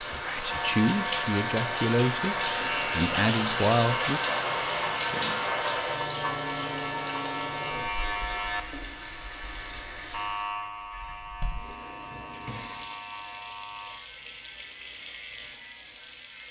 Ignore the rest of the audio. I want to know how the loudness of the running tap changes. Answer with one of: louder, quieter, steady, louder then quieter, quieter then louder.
quieter.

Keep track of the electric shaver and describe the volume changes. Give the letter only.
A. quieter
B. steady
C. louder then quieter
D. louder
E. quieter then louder
A.